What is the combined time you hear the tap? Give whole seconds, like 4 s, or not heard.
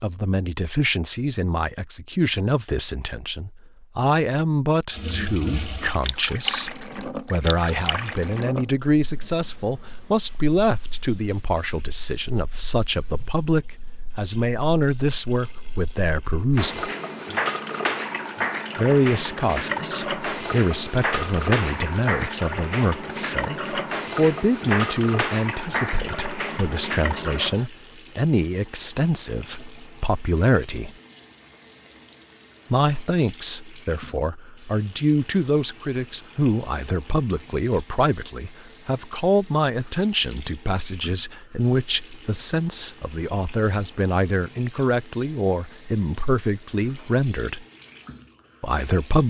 44 s.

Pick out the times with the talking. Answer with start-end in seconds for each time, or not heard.
0.0-16.9, 18.8-30.9, 32.7-47.6, 48.6-49.2.